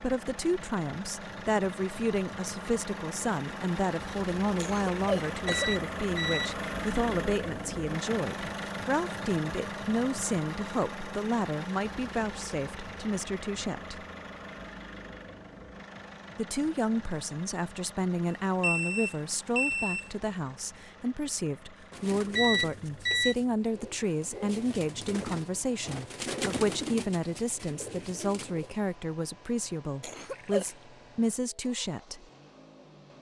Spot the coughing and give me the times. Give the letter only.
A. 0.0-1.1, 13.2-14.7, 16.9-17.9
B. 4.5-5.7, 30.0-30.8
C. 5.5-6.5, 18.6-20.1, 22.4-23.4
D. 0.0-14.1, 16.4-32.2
B.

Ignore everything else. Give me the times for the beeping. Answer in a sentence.
You can hear the beeping from 5.5 to 6.5 s, from 18.6 to 20.1 s and from 22.4 to 23.4 s.